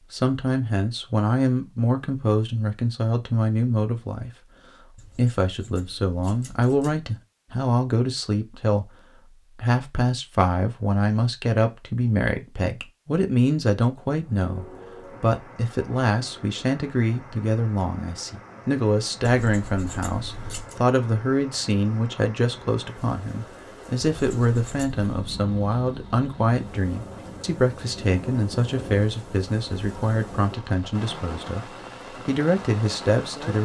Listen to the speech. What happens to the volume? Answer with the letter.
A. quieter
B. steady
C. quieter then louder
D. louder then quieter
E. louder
B.